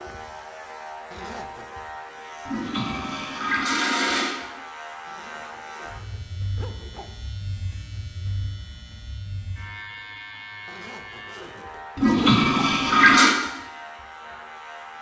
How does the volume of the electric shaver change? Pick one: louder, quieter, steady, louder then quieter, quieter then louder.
steady.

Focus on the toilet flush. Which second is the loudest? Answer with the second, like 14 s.
13 s.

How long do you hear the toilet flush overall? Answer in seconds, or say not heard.
3 s.